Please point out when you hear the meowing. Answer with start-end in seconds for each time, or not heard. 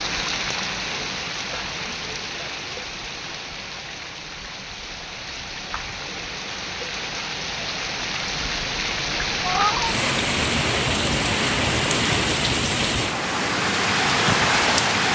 9.4-9.9.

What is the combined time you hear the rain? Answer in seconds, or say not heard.
15 s.